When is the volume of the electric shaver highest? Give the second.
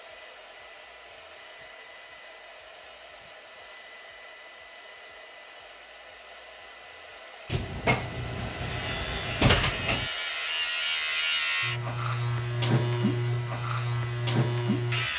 13 s.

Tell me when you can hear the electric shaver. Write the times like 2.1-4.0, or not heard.
8.6-15.1.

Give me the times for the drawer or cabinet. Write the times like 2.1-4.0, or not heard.
7.5-10.1.